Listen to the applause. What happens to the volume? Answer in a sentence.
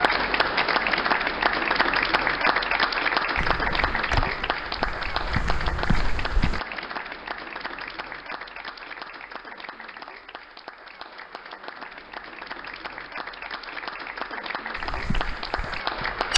The loudness of the applause goes down, then up.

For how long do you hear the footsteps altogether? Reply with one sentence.
You can hear the footsteps for 5 seconds altogether.